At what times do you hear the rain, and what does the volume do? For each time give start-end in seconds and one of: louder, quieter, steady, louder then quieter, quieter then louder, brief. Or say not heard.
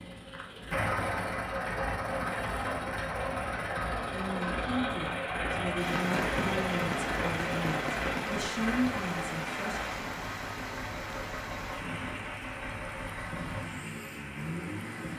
5.8-15.1 quieter.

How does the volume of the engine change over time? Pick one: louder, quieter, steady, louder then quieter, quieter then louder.
quieter.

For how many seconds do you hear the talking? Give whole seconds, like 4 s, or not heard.
6 s.